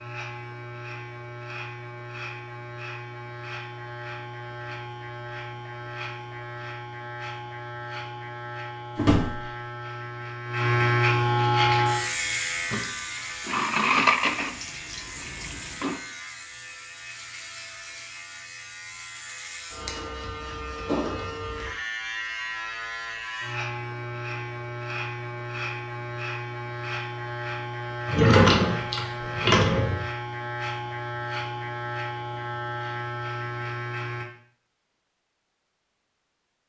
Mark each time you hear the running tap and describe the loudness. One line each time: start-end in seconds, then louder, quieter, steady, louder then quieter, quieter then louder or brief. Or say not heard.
11.5-16.0 louder then quieter.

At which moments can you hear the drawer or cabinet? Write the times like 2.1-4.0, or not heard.
8.9-9.6, 28.1-30.0.